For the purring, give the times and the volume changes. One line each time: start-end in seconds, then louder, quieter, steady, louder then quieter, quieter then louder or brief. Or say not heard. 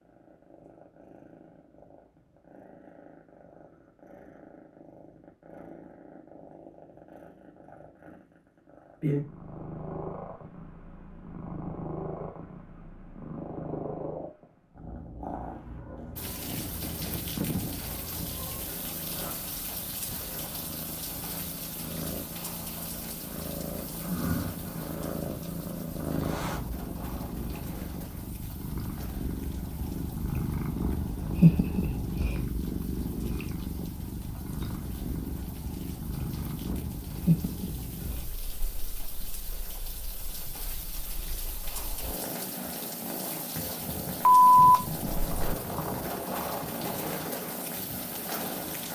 0.0-48.9 louder then quieter.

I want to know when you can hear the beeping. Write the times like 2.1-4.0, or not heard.
44.2-45.5.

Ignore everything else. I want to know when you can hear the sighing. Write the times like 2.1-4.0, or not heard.
not heard.